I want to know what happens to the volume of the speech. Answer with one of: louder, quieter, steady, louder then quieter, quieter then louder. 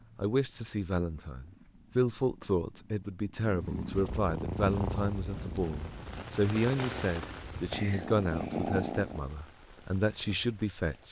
steady.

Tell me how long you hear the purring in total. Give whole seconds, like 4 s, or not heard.
9 s.